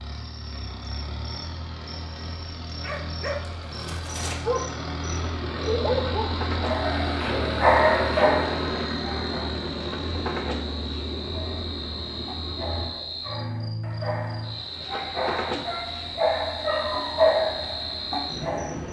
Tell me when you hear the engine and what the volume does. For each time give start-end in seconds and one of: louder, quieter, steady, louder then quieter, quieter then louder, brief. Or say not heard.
0.0-18.8 louder then quieter.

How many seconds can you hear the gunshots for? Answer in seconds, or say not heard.
2 s.